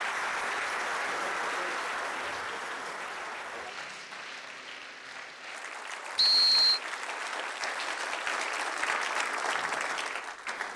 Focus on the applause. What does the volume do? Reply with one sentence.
The loudness of the applause goes down, then up.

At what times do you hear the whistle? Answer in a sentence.
You can hear the whistle from 6.2 to 6.8 s.